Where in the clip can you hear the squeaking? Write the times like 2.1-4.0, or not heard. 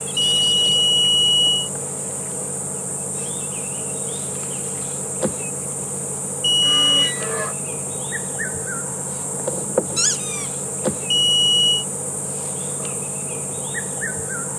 0.1-0.8, 6.6-7.6, 9.9-10.5.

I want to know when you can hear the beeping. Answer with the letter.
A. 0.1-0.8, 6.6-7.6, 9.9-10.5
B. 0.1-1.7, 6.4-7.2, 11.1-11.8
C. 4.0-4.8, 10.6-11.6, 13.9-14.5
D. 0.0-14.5
B.